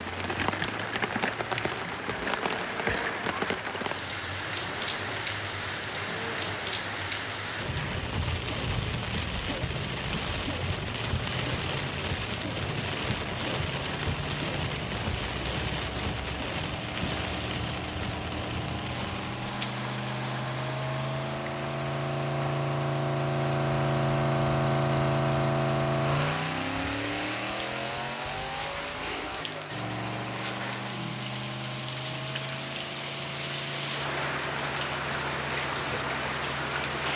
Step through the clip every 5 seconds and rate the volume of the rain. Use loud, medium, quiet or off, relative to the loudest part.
loud, loud, loud, loud, medium, medium, loud, loud.